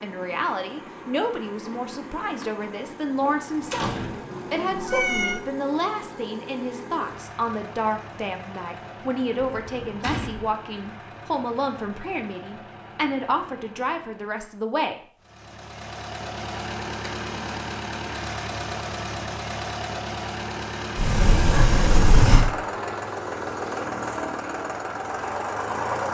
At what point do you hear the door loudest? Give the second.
22 s.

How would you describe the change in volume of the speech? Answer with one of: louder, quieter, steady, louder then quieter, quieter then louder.
steady.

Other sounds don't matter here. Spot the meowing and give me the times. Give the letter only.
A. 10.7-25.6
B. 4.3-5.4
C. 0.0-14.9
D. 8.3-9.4
B.